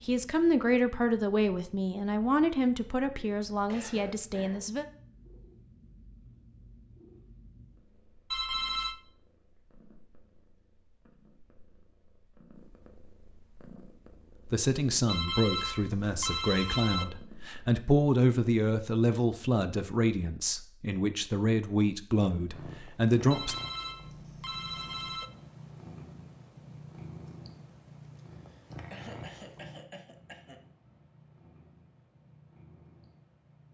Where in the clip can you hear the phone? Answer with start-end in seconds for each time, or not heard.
8.3-9.0, 15.1-17.1, 23.3-25.3.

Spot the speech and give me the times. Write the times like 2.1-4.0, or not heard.
0.1-4.8, 14.5-23.6.